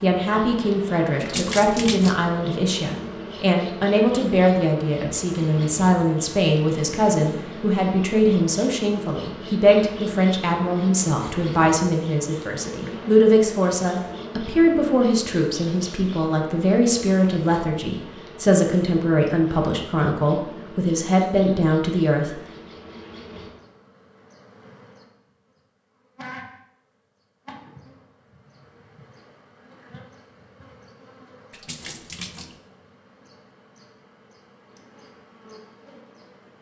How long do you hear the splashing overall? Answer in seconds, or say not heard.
2 s.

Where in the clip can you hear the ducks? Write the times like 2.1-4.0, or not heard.
not heard.